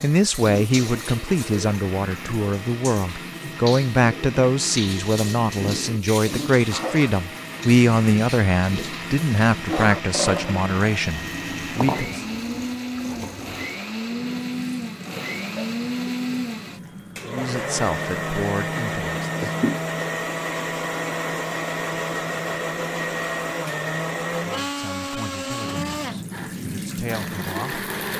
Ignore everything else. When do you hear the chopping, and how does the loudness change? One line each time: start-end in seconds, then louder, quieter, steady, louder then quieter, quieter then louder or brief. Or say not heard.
not heard.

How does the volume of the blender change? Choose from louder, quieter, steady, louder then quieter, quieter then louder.
louder.